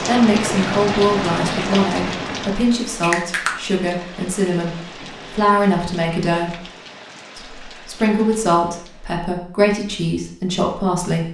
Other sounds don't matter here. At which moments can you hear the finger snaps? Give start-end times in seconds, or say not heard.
3.0-3.6.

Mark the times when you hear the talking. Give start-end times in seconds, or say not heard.
0.0-6.5, 7.3-11.2.